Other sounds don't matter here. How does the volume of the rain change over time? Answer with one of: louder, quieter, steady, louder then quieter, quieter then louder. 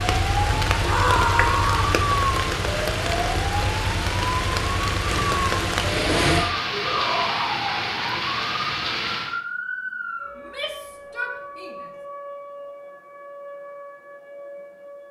steady.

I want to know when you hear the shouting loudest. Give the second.
1 s.